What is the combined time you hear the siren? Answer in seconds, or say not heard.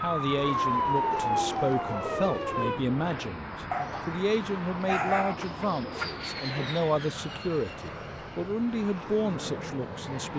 3 s.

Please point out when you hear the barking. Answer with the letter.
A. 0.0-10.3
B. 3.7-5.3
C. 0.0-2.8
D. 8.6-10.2
B.